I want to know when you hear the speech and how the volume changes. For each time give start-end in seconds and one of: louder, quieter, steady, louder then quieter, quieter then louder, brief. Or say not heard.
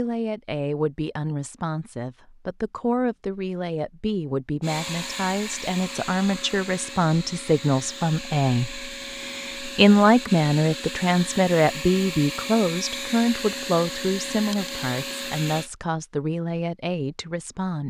0.0-17.8 louder then quieter.